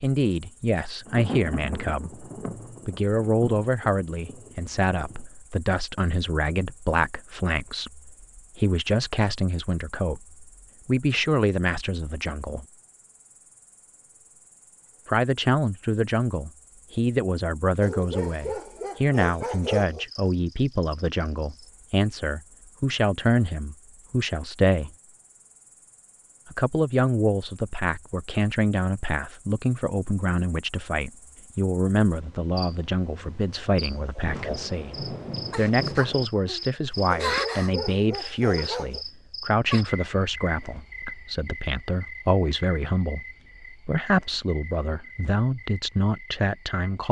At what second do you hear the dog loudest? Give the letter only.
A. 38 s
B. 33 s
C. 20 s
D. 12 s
C.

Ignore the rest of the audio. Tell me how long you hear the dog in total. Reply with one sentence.
You can hear the dog for 4 seconds altogether.